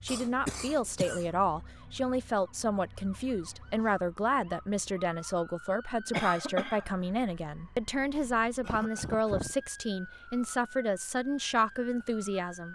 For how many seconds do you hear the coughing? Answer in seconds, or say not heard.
3 s.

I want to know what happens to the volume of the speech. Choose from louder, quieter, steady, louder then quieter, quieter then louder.
steady.